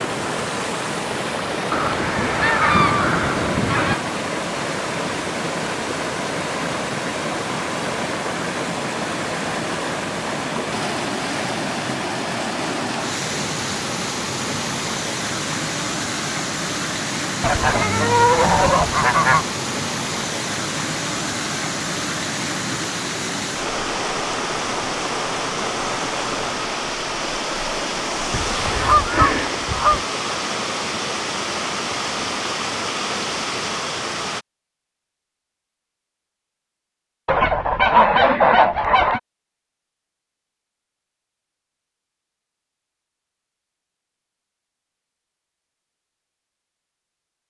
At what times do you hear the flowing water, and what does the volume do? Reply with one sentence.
You can hear the flowing water from 0.0 to 34.5 s, at a steady volume.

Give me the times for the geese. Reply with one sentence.
The geese can be heard from 1.7 to 4.0 s, from 17.4 to 19.4 s, from 28.3 to 30.0 s and from 37.2 to 39.2 s.